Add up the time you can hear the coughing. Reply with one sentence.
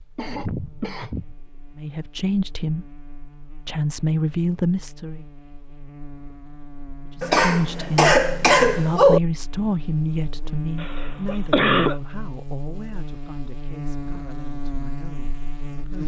You can hear the coughing for 4 seconds altogether.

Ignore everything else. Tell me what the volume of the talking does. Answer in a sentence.
The loudness of the talking goes down.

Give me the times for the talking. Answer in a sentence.
You can hear the talking from 1.8 to 5.2 s and from 7.2 to 16.0 s.